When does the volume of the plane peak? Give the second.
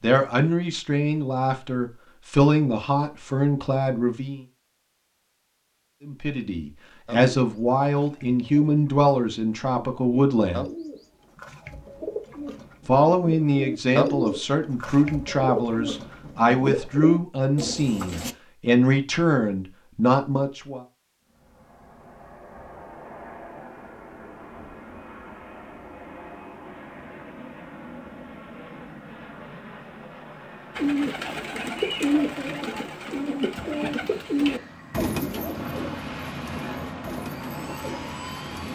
36 s.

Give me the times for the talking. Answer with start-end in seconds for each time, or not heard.
0.0-4.4, 6.0-10.7, 12.8-20.8.